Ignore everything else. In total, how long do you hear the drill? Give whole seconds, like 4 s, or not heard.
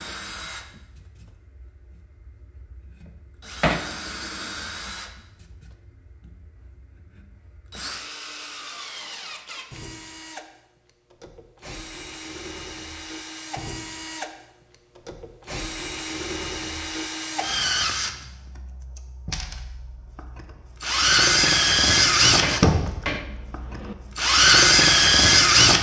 26 s.